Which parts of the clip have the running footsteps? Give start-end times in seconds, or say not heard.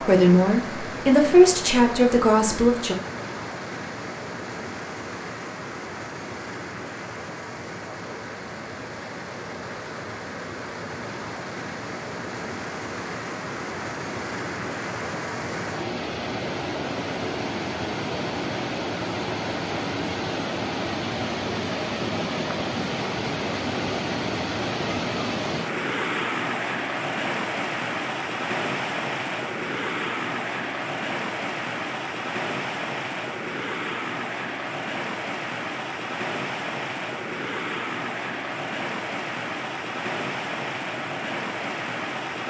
not heard.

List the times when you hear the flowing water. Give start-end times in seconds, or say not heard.
0.0-42.4.